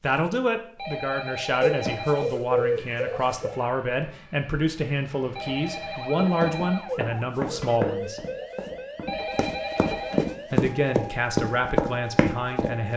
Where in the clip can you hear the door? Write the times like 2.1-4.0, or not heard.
not heard.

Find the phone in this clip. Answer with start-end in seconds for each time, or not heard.
0.8-2.2, 5.3-6.8, 9.1-10.3.